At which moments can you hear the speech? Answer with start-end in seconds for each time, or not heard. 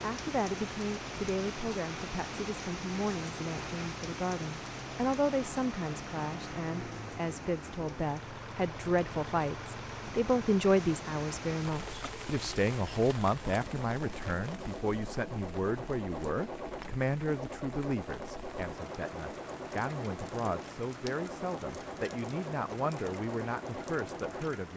0.0-24.7.